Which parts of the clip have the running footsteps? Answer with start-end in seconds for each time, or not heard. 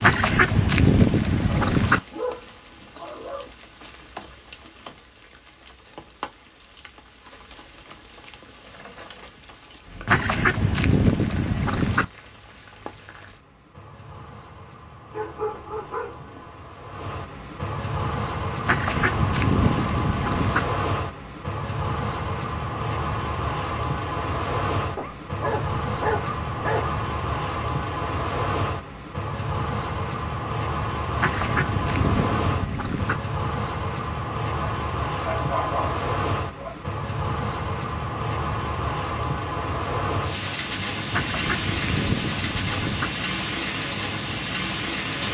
not heard.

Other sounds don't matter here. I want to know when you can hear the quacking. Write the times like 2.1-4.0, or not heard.
0.0-2.0, 10.1-12.1, 18.6-20.6, 31.1-33.2, 41.1-43.1.